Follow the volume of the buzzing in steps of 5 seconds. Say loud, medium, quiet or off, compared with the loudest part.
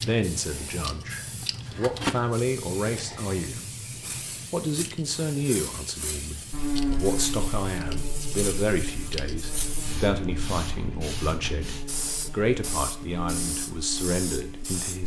off, loud, medium.